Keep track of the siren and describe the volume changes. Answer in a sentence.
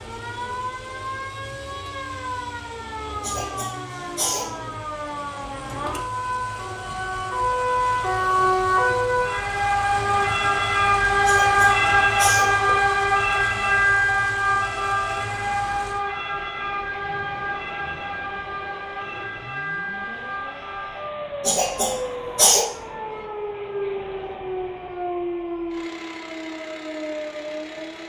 The volume of the siren goes up, then down.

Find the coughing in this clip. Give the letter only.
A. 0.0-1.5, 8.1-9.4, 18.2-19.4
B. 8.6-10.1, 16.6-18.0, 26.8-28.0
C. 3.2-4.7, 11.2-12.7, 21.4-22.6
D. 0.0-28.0
C.